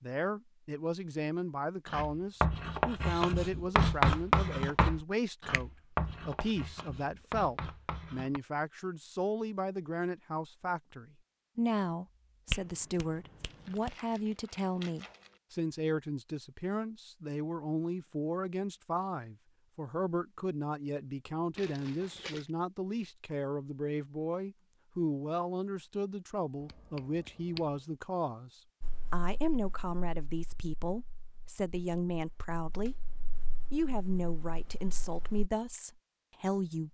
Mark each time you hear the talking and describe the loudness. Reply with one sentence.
You can hear the talking from 0.0 to 36.8 s, at a steady volume.